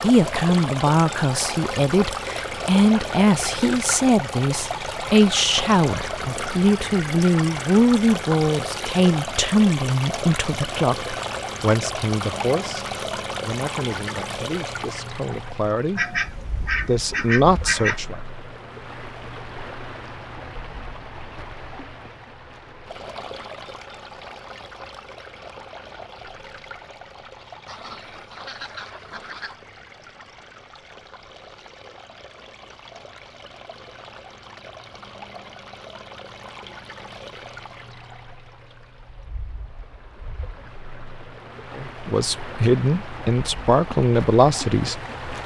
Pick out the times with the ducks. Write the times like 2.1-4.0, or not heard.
15.9-18.0, 27.6-29.6.